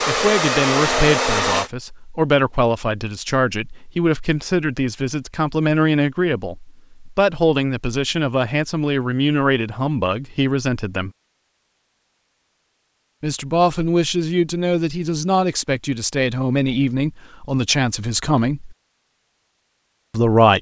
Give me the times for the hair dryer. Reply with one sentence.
The hair dryer can be heard from 0.0 to 1.7 s.